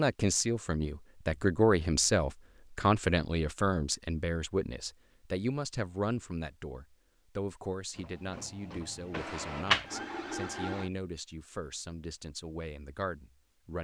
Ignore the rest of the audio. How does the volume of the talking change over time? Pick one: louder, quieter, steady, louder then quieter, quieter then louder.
quieter.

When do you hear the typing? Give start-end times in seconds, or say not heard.
not heard.